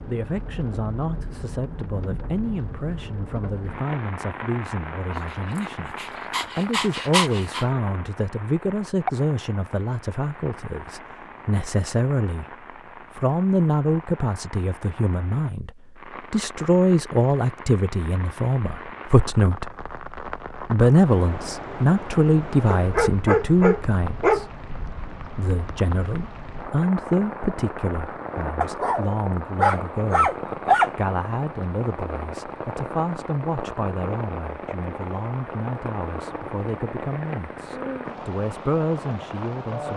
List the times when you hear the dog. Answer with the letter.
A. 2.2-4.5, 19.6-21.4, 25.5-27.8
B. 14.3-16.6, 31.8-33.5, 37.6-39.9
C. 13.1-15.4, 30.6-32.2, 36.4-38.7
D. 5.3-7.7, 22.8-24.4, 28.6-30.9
D.